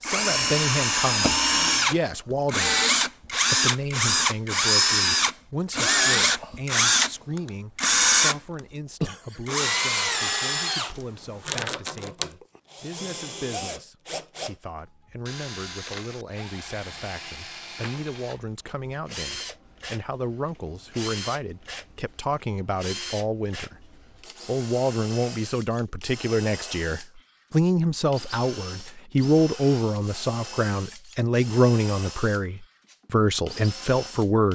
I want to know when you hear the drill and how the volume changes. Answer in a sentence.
The drill can be heard from 0.0 to 34.5 s, getting quieter.